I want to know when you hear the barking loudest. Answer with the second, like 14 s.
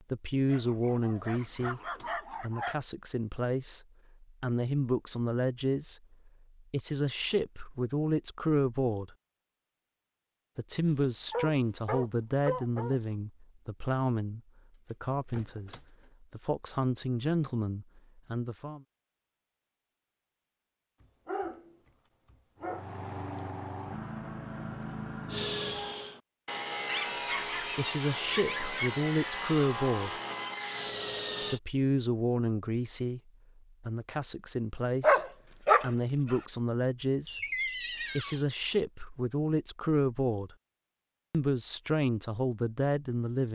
35 s.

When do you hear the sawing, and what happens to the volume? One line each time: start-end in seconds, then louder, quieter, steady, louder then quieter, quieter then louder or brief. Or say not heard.
25.2-31.6 steady.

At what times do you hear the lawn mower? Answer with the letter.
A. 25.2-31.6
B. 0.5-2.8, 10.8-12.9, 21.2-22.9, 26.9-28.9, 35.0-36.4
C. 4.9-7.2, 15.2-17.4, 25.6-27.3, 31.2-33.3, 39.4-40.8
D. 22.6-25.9
D.